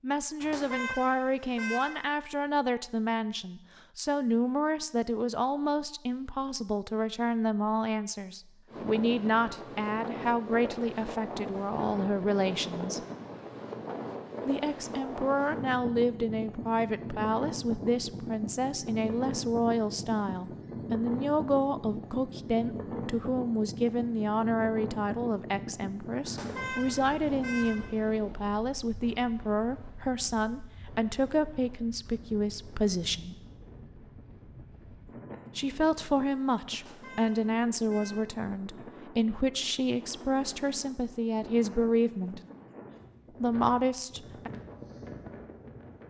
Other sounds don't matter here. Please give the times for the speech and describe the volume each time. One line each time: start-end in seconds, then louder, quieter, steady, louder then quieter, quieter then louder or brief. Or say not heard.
0.0-13.0 steady
14.4-33.4 steady
35.5-42.4 steady
43.4-44.5 brief.